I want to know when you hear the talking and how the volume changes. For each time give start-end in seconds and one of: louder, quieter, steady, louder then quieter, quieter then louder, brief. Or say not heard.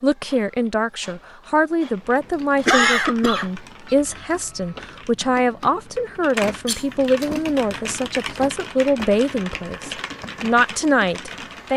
0.0-11.7 steady.